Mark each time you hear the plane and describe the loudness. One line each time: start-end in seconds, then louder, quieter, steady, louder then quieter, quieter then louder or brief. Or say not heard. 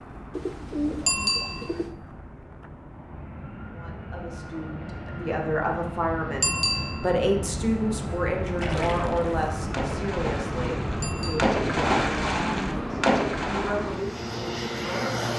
0.0-15.3 louder.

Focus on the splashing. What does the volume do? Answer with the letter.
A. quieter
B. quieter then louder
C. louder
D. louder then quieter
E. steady
C.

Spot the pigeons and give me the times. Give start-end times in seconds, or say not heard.
0.3-1.9.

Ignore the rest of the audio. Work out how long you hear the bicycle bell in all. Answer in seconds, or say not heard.
2 s.